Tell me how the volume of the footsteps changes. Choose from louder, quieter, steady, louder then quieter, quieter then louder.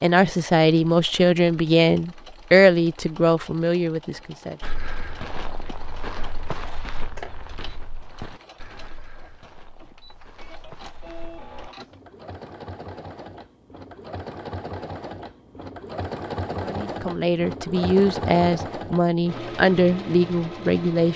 quieter.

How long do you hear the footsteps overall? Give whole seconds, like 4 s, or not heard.
7 s.